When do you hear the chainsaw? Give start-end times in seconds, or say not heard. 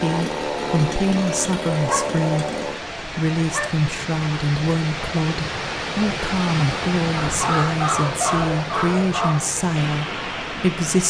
0.0-2.8.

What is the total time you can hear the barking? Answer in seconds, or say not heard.
4 s.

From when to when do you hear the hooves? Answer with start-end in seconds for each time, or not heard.
not heard.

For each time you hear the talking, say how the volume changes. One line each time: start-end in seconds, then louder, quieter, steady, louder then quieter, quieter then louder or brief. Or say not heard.
0.0-11.0 steady.